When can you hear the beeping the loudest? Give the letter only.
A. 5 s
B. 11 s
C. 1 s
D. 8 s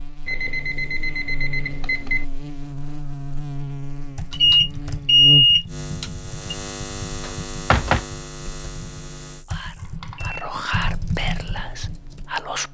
A.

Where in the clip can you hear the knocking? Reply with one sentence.
You can hear the knocking from 7.2 to 8.1 s.